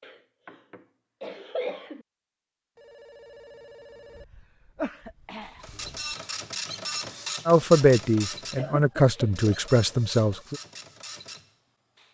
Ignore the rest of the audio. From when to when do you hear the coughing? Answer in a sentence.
The coughing can be heard from 0.0 to 2.0 s, from 4.2 to 6.2 s and from 8.6 to 9.6 s.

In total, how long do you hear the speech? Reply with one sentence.
You can hear the speech for 3 seconds altogether.